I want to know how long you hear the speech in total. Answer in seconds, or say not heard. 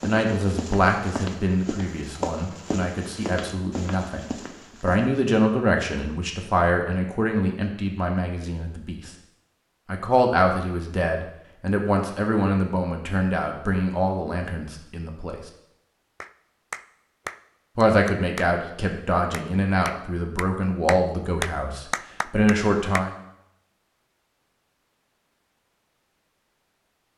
20 s.